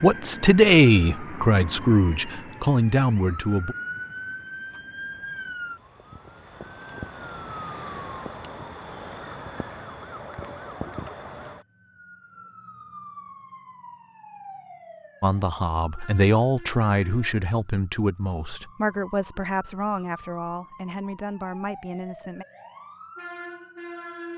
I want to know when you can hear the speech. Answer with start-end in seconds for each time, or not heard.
0.0-3.8, 15.2-22.4.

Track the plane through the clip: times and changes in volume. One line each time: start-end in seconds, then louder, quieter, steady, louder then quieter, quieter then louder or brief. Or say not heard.
not heard.